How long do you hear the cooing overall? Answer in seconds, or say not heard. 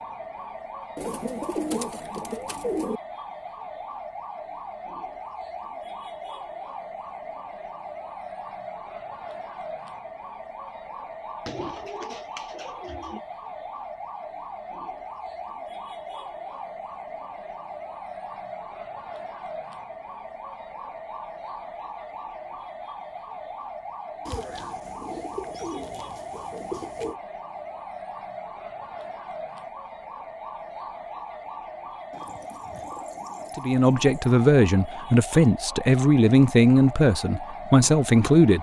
9 s.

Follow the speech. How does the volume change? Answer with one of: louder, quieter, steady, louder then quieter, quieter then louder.
steady.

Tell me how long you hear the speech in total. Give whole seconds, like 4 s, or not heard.
5 s.